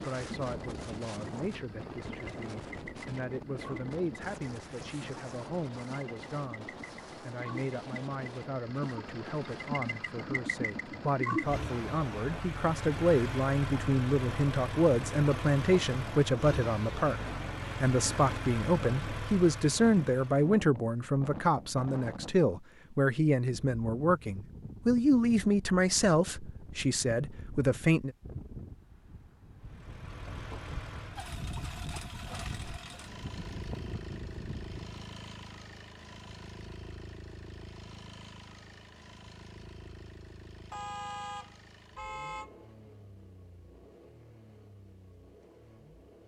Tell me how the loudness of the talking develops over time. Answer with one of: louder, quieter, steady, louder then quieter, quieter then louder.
louder.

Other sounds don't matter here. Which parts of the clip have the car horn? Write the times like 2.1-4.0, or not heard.
40.7-42.6.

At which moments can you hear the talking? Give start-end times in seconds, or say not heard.
0.0-28.1.